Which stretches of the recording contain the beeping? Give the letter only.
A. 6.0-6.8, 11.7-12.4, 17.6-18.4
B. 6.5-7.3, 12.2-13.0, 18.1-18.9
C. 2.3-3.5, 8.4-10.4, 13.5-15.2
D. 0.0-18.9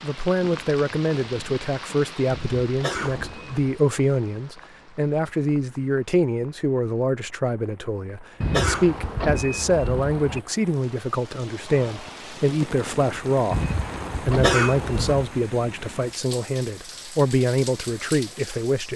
C.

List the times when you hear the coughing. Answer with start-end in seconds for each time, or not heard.
2.8-3.5, 8.5-9.2, 14.4-15.2.